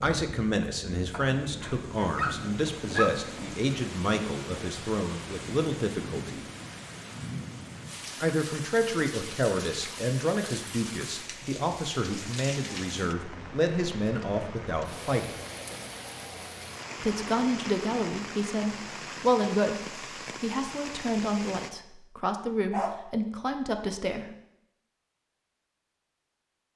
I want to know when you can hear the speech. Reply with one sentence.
The speech can be heard from 0.0 to 6.5 s, from 8.2 to 15.4 s and from 17.0 to 24.2 s.